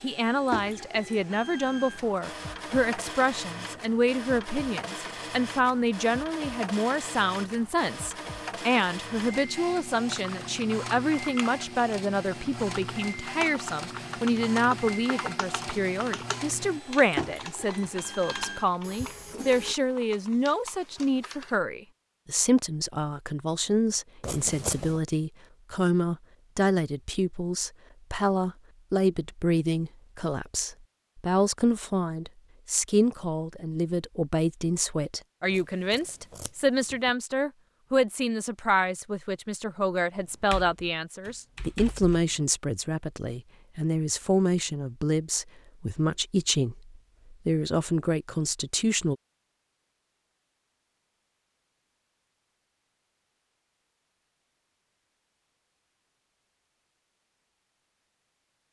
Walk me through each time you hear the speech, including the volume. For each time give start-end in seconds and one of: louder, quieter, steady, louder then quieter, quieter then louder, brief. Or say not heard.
0.0-49.1 steady.